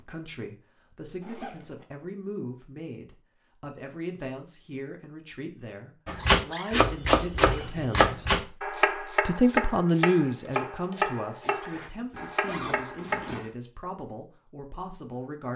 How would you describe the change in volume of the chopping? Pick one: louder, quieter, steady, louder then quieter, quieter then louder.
quieter.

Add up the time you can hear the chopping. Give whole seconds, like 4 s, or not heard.
7 s.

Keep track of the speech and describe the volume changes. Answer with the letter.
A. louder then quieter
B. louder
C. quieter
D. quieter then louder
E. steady
A.